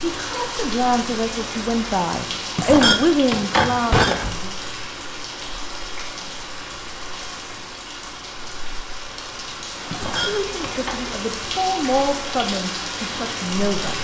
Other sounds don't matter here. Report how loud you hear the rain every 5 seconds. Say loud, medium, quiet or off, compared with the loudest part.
loud, medium, loud.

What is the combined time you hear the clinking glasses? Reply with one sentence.
You can hear the clinking glasses for 3 seconds altogether.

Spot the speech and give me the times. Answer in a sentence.
The speech can be heard from 0.0 to 4.5 s and from 10.2 to 13.9 s.